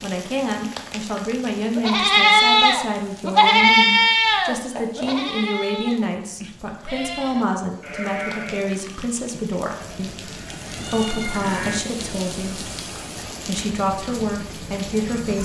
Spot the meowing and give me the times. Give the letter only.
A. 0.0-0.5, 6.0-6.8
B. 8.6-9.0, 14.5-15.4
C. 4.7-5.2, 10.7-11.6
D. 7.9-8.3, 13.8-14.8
C.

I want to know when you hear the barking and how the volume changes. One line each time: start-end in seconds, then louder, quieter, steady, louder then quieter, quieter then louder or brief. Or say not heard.
not heard.